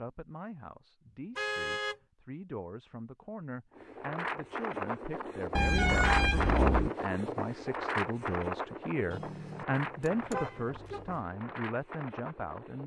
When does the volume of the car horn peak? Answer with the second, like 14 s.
6 s.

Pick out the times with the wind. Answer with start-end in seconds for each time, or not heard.
3.7-12.8.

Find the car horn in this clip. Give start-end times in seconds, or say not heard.
1.4-2.0, 5.5-6.9, 9.1-11.2.